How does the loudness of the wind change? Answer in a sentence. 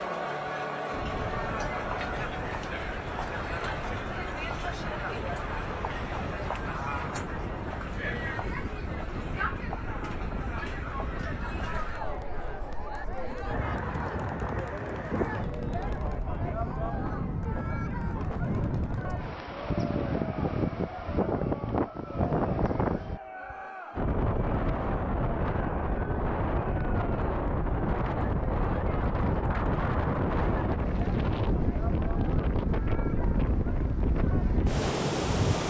The loudness of the wind goes up.